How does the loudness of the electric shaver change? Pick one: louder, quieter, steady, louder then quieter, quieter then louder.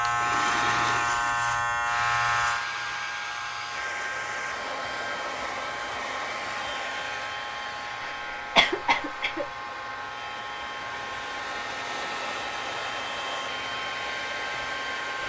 quieter.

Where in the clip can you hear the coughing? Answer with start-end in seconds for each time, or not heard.
8.0-9.4.